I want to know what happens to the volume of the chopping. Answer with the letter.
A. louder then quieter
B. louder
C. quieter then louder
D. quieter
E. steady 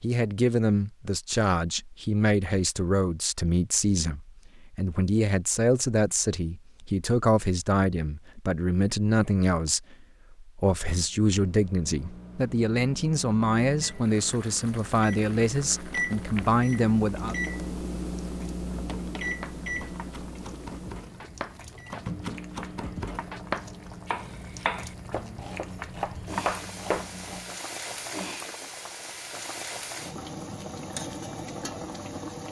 B.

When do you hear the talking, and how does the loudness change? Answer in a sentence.
The talking can be heard from 0.0 to 17.4 s, at a steady volume.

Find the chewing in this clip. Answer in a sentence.
You can't hear the chewing here.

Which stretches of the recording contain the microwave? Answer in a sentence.
The microwave can be heard from 11.1 to 27.6 s.